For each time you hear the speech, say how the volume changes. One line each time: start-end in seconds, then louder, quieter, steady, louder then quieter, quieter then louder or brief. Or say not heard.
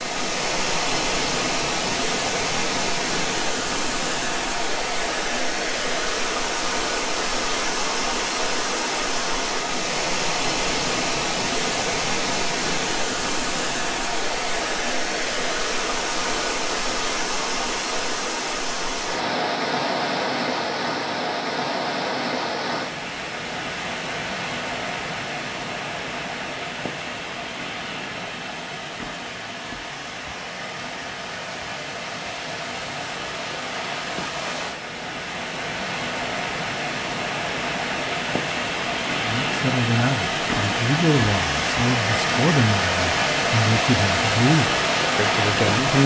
39.1-46.0 steady.